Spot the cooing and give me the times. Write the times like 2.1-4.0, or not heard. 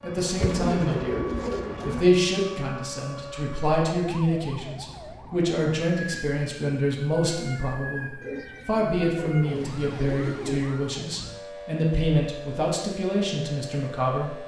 0.4-2.1, 8.2-10.8.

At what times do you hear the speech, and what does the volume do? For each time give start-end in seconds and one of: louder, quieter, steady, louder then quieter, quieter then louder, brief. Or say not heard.
0.0-1.2 brief
1.9-14.3 steady.